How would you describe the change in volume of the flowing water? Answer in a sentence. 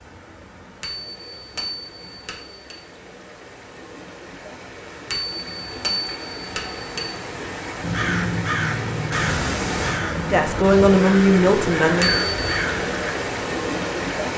The loudness of the flowing water goes up.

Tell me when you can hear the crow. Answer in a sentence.
The crow can be heard from 7.8 to 13.2 s.